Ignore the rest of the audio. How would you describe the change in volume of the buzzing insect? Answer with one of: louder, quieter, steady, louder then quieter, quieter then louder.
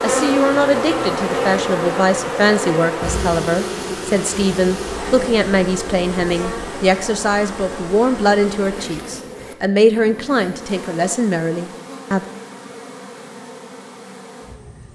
quieter.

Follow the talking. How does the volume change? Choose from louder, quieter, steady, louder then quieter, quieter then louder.
steady.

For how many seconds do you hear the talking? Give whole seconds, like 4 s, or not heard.
12 s.